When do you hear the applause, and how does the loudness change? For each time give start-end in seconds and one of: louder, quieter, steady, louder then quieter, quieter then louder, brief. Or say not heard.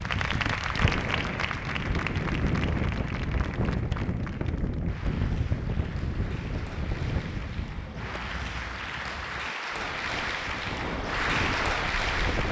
0.0-12.4 quieter then louder.